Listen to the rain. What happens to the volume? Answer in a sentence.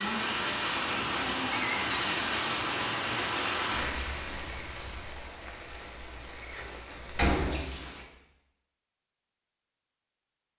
The volume of the rain goes down.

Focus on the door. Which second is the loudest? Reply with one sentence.
The volume of the door peaks at 7 seconds.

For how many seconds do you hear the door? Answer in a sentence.
The door can be heard for 3 seconds in total.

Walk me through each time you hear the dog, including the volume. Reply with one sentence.
You can't hear the dog here.